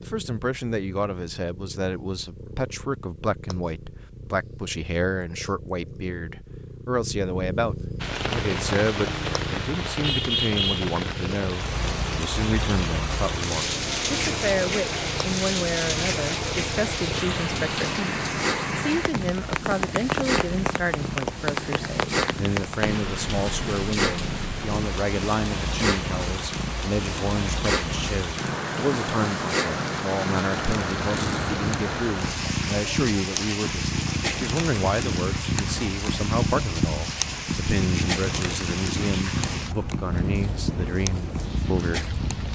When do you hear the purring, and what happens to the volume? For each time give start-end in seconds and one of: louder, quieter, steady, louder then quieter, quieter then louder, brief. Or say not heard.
0.0-42.5 louder.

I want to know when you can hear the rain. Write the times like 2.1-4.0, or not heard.
8.0-42.5.